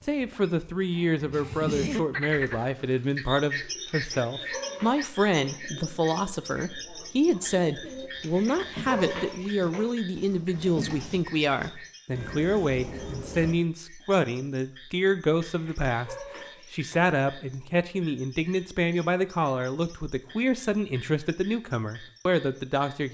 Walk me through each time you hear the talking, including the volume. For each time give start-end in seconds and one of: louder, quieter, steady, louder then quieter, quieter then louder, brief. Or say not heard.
0.0-23.0 steady.